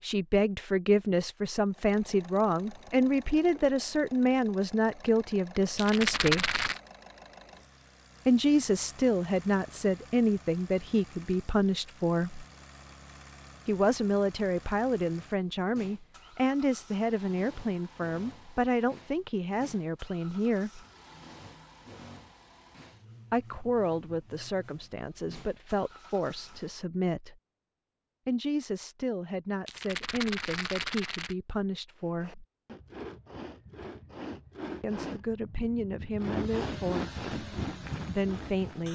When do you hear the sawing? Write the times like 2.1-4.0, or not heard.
31.9-38.8.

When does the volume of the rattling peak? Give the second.
6 s.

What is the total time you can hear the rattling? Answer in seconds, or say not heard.
3 s.